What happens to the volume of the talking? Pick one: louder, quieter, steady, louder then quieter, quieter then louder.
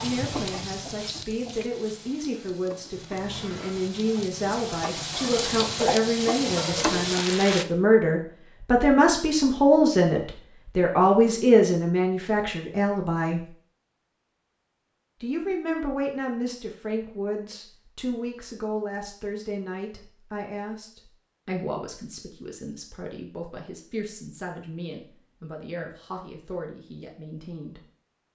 louder then quieter.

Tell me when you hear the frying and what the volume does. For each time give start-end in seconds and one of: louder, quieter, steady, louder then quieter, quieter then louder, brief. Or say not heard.
0.0-7.7 quieter then louder.